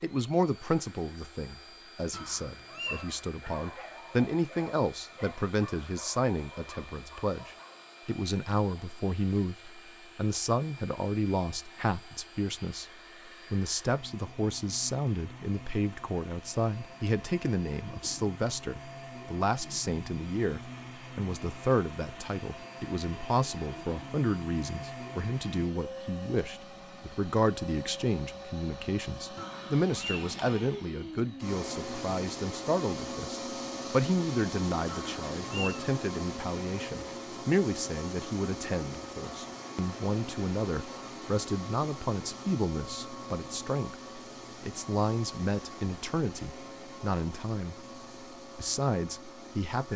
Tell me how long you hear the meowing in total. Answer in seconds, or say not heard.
3 s.